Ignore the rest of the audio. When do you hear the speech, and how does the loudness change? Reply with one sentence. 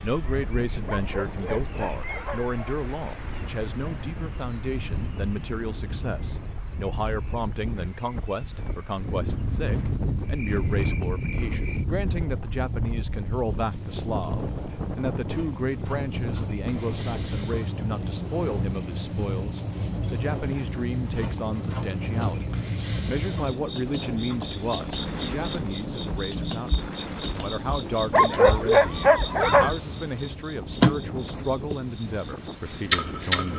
You can hear the speech from 0.0 to 33.5 s, at a steady volume.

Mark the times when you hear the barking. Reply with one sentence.
You can hear the barking from 0.8 to 2.8 s and from 28.1 to 29.7 s.